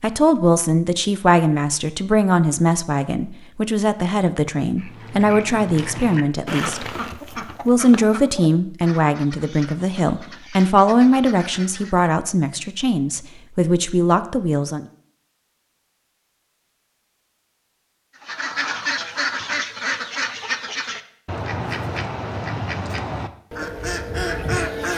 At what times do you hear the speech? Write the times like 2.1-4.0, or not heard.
0.0-7.0, 7.7-14.8.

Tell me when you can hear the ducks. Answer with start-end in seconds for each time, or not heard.
4.8-12.1, 18.2-24.9.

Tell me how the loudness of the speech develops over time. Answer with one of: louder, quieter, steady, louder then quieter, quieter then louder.
steady.